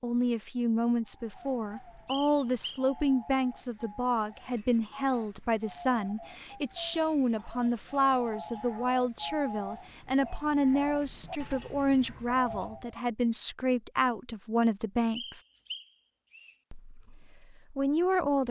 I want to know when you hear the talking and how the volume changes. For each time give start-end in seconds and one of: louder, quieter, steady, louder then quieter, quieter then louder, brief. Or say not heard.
0.0-15.4 steady
16.7-18.4 brief.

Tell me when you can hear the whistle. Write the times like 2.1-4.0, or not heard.
2.0-2.9, 15.2-16.6.